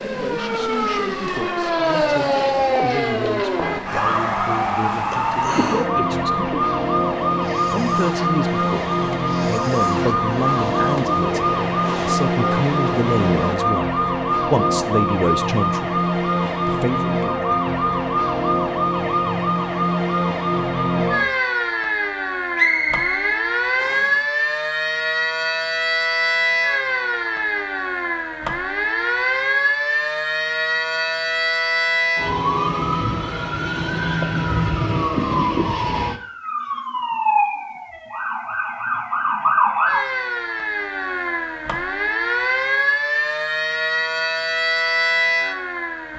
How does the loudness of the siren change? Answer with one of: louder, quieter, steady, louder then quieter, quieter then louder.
steady.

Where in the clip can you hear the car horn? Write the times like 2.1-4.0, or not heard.
2.9-3.9.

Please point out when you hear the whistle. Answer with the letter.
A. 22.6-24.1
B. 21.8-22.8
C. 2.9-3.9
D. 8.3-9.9
A.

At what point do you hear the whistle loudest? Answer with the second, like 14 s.
23 s.